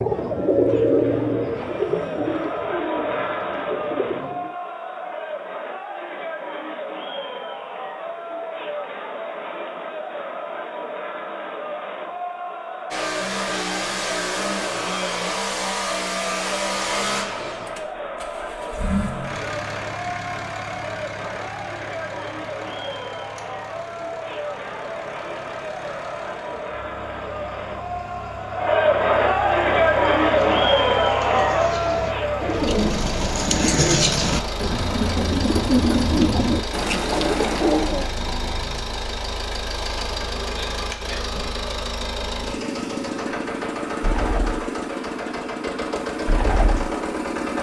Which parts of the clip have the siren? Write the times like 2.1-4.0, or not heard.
not heard.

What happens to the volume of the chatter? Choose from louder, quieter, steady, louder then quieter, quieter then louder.
louder.